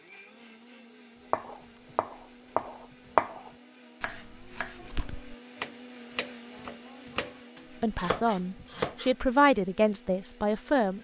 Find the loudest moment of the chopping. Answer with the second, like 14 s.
3 s.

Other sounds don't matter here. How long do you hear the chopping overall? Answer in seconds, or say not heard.
8 s.